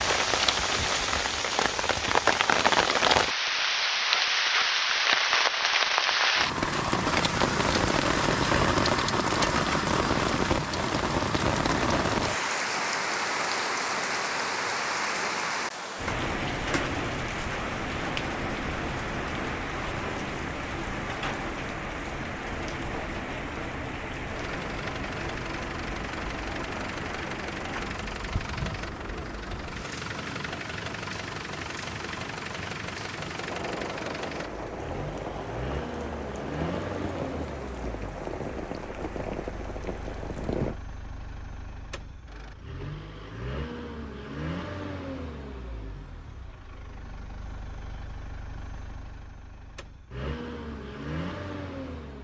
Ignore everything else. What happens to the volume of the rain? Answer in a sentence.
The loudness of the rain goes down.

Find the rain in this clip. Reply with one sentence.
The rain can be heard from 0.0 to 40.8 s.